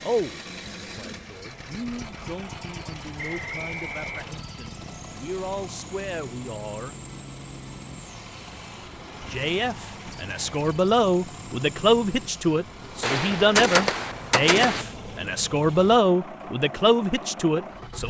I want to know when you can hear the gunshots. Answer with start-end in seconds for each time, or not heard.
13.0-14.8.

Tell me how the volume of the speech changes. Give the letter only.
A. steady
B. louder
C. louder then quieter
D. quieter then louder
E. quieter
B.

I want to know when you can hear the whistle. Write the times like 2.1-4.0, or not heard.
3.1-4.5.